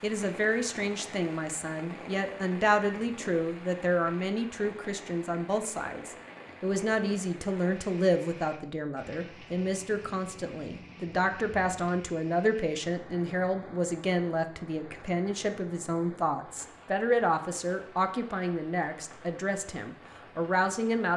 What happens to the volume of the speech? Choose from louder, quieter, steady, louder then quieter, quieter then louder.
steady.